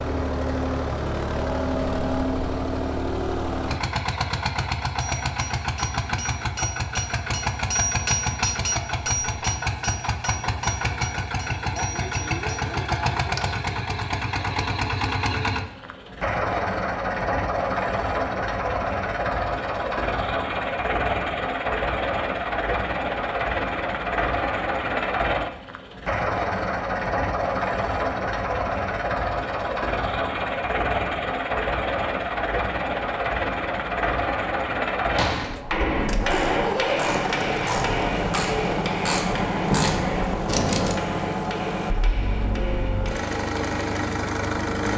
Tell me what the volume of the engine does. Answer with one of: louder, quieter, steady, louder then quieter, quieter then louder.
steady.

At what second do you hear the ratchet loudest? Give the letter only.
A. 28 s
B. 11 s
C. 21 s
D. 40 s
D.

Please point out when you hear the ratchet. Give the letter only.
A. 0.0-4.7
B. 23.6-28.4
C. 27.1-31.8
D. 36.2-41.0
D.